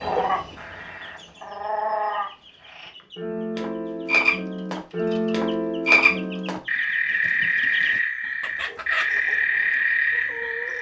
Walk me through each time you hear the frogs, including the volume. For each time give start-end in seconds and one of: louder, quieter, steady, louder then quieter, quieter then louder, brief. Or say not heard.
0.0-10.7 louder.